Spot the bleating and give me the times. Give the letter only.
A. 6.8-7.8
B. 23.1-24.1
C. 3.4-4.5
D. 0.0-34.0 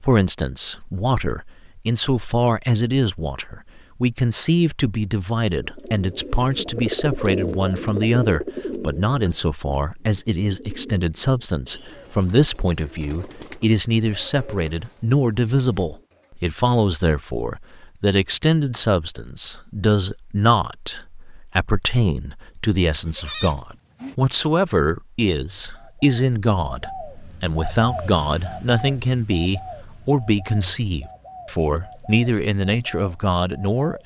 B.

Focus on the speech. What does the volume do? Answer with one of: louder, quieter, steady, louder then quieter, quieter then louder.
steady.